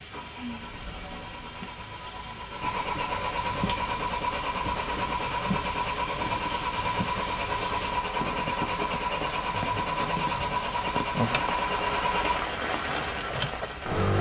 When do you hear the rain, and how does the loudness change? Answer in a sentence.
The rain can be heard from 0.0 to 14.1 s, getting louder.